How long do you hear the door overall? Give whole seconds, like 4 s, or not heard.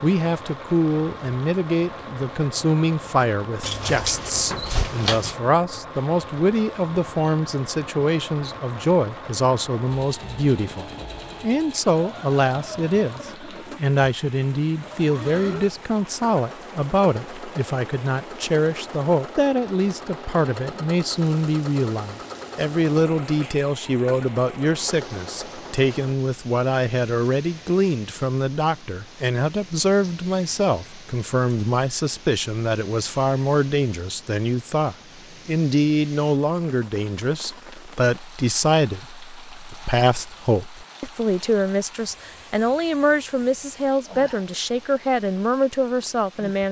2 s.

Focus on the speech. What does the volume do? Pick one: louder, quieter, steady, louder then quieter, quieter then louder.
steady.